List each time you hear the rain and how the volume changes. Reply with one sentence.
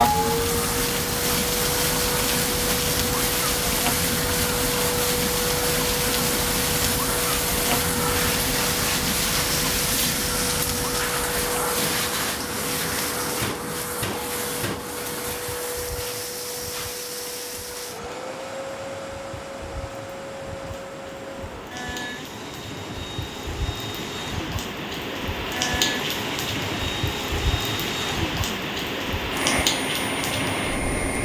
The rain can be heard from 0.0 to 31.1 s, getting quieter then louder.